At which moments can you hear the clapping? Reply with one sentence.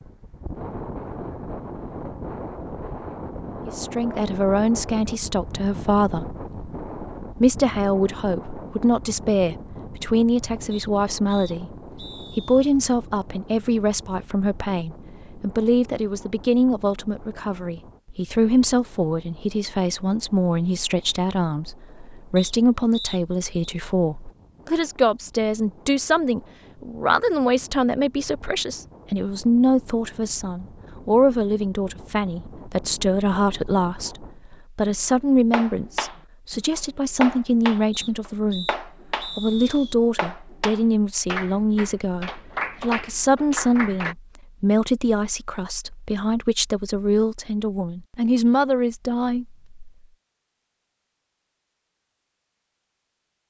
The clapping can be heard from 34.9 to 44.1 s.